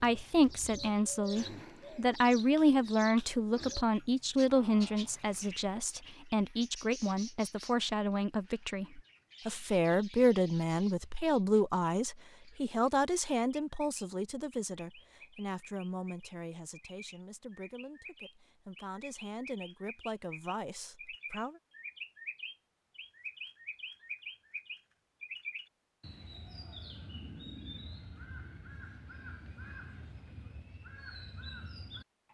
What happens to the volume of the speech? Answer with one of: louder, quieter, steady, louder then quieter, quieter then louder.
quieter.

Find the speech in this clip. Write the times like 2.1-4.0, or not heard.
0.0-21.6.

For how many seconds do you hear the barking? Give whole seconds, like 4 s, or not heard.
not heard.